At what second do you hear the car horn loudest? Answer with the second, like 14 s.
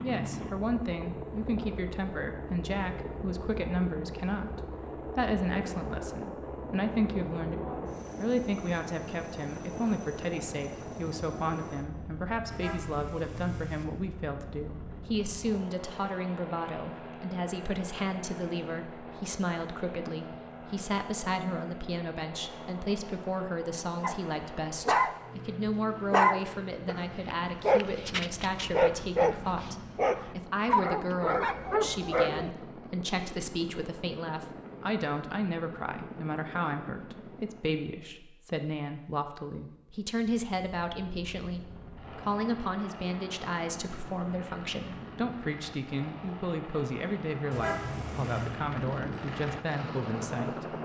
48 s.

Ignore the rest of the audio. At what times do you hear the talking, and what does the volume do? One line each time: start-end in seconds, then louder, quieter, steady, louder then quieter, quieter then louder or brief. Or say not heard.
0.0-50.7 steady.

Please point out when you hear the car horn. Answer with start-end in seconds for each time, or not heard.
12.5-13.8, 47.5-48.5.